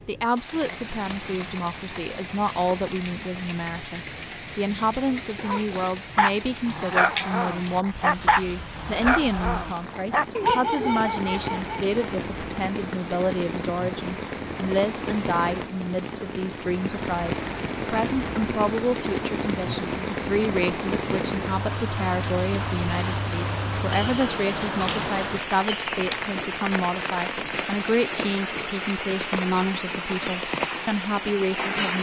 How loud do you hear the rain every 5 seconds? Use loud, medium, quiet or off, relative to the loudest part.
medium, medium, medium, loud, loud, loud, loud.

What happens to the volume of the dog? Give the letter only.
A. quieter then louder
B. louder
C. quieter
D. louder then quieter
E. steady
E.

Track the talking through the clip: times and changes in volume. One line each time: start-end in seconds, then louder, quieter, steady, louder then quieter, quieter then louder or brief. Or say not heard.
0.1-31.9 steady.